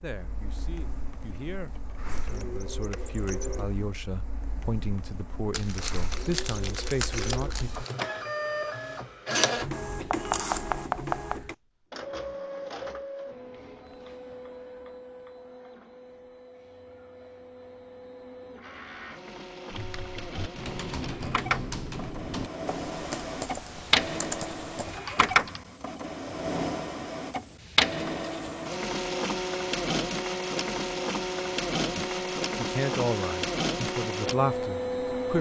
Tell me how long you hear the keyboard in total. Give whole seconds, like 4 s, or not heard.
6 s.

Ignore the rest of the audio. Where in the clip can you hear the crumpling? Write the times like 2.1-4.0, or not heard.
5.5-8.1.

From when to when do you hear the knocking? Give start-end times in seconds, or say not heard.
10.1-11.4.